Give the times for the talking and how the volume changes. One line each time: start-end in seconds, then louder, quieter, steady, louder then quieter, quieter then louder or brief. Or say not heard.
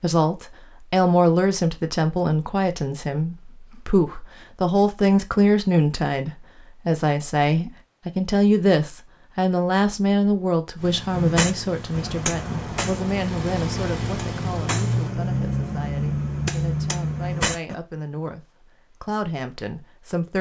0.0-20.3 quieter.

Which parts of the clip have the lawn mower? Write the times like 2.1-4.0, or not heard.
10.8-15.2.